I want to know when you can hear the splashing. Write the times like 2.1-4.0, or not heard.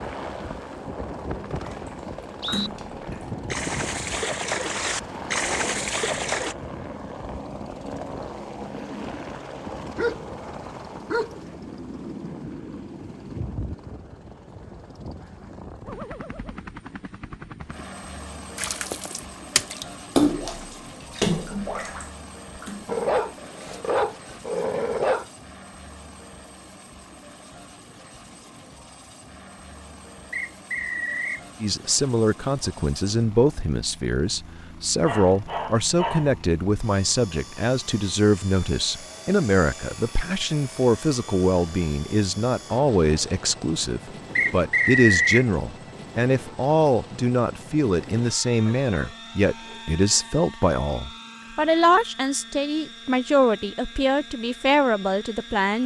1.5-6.5, 18.6-23.8.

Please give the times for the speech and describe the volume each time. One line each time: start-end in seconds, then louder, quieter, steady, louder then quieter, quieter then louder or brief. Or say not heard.
31.6-55.8 steady.